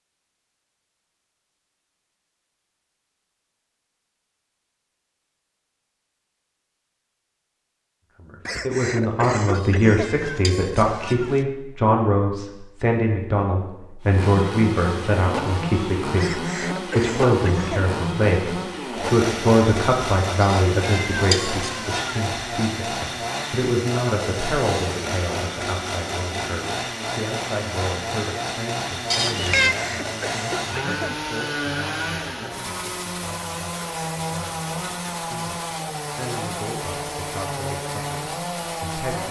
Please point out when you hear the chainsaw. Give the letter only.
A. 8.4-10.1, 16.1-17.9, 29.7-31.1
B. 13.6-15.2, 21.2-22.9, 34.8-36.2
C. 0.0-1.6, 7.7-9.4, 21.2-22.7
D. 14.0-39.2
D.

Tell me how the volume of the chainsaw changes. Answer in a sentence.
The volume of the chainsaw stays about the same.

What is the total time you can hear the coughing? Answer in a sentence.
You can hear the coughing for 5 seconds altogether.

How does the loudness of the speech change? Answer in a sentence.
The loudness of the speech goes down.